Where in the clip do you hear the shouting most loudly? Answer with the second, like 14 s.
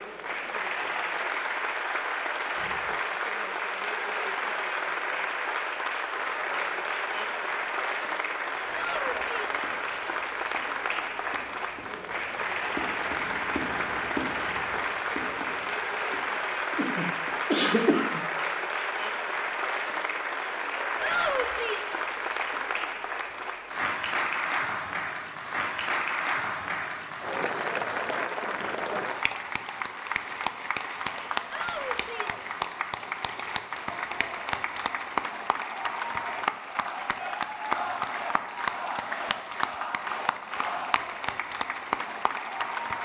21 s.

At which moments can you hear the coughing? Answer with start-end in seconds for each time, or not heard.
16.8-18.2.